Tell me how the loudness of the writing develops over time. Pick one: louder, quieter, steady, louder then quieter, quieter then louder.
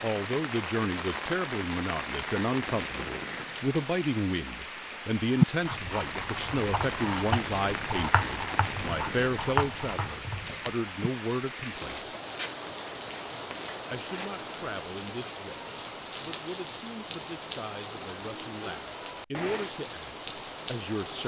quieter.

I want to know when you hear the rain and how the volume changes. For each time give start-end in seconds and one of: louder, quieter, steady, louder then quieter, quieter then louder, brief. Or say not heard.
0.0-21.2 steady.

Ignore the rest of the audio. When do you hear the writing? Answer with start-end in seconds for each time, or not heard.
5.3-14.7.